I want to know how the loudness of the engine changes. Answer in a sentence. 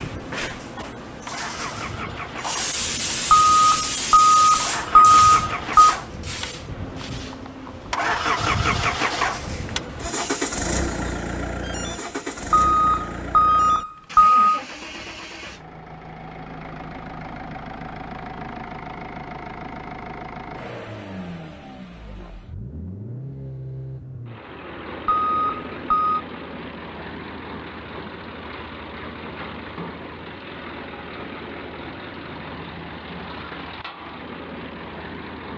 The loudness of the engine goes up, then down.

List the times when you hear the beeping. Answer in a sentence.
The beeping can be heard from 3.3 to 6.0 s, from 12.5 to 14.6 s and from 25.1 to 26.2 s.